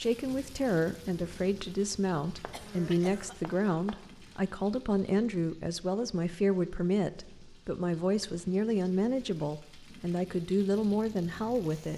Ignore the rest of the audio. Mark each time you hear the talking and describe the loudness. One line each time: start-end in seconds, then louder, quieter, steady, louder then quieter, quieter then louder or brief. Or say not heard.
0.0-11.9 steady.